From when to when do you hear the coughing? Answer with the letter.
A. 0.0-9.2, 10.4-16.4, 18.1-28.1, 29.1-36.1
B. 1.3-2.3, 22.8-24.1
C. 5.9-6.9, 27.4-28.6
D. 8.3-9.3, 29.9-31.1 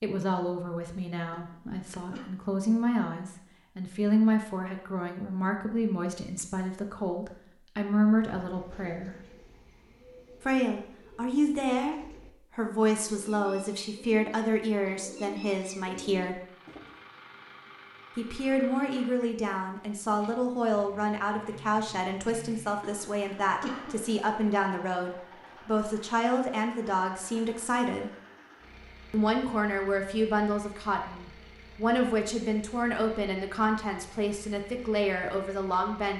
B.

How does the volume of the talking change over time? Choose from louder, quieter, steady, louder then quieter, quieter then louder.
steady.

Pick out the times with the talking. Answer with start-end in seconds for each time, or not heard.
0.0-9.2, 10.4-16.4, 18.1-28.1, 29.1-36.1.